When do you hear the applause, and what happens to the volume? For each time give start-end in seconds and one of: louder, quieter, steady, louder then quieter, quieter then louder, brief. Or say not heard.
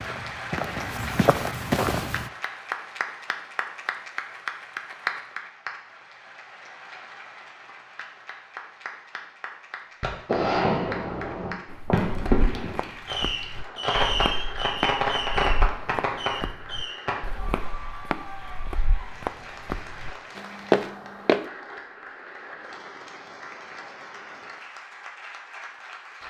0.0-26.2 quieter.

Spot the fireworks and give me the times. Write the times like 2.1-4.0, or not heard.
10.0-17.7.